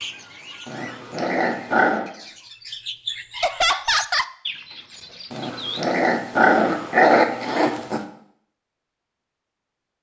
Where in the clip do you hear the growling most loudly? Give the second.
7 s.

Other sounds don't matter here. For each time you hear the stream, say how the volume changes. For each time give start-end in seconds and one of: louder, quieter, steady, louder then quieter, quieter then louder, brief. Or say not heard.
not heard.